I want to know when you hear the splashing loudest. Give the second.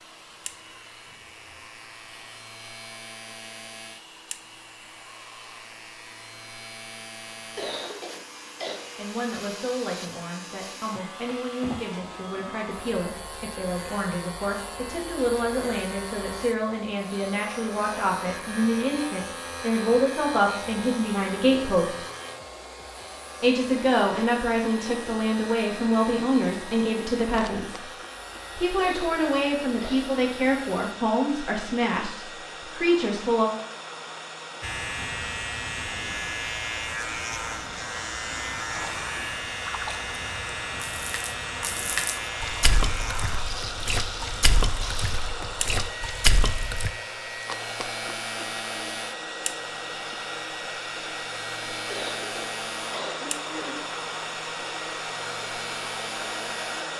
46 s.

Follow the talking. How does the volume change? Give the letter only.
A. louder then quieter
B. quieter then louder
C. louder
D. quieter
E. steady
C.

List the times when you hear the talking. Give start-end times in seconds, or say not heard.
8.9-22.1, 23.4-27.9, 28.6-33.5.